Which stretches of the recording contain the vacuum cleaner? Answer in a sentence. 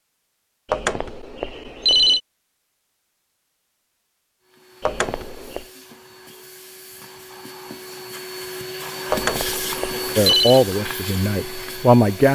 You can hear the vacuum cleaner from 4.4 to 12.3 s.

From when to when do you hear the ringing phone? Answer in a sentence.
The ringing phone can be heard from 0.7 to 2.2 s, from 4.8 to 5.7 s and from 9.1 to 10.7 s.